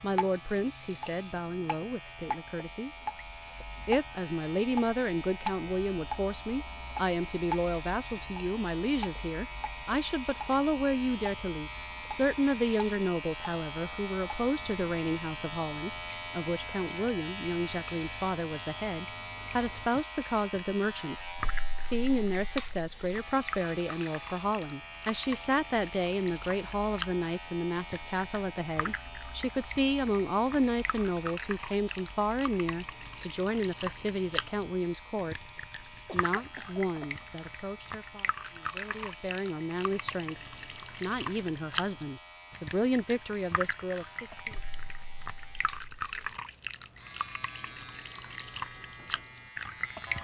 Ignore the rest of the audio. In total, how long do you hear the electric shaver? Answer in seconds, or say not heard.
50 s.